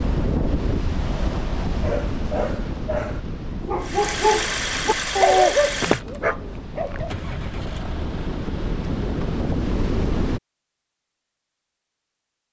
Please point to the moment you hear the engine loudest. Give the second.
5 s.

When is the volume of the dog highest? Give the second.
5 s.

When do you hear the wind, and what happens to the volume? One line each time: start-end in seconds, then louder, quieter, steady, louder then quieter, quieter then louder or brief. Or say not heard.
0.0-10.4 quieter then louder.